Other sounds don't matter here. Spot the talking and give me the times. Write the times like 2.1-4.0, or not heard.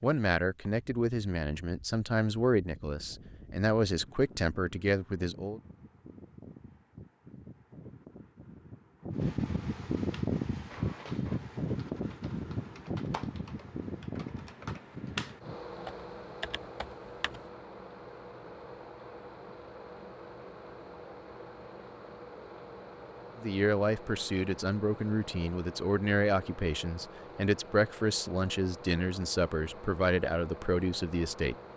0.0-5.6, 23.4-31.6.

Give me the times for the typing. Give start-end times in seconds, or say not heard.
10.1-17.4.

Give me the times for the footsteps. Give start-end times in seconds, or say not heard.
not heard.